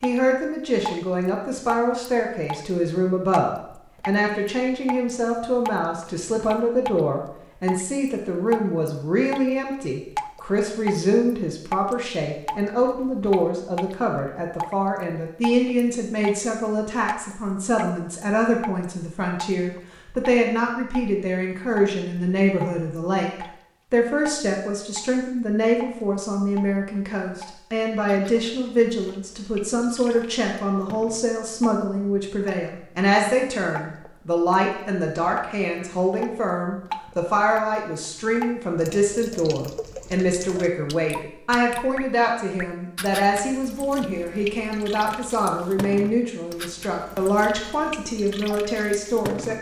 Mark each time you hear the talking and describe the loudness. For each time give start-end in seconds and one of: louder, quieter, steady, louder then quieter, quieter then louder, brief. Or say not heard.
0.0-49.5 steady.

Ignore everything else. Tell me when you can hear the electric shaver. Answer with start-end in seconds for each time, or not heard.
not heard.